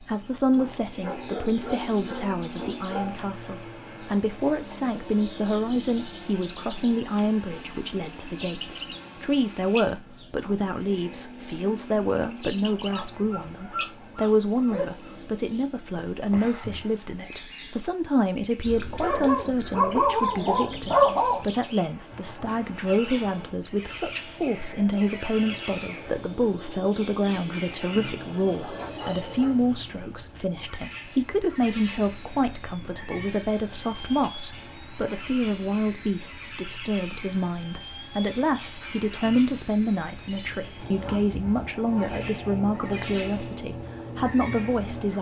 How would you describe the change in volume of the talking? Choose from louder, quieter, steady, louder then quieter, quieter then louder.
steady.